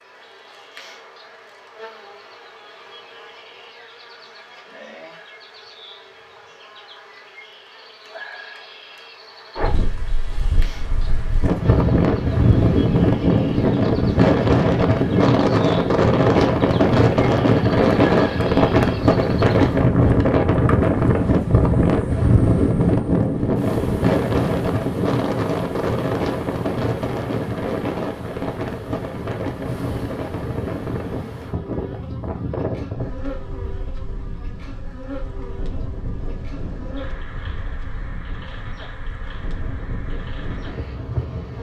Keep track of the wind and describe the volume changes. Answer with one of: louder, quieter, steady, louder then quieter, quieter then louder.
quieter.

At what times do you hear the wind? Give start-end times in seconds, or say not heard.
9.6-41.5.